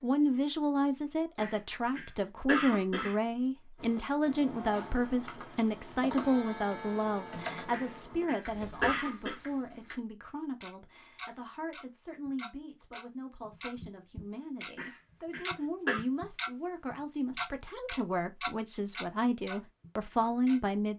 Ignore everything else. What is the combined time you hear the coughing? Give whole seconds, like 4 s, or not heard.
5 s.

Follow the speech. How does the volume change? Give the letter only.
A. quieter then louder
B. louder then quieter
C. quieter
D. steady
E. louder
A.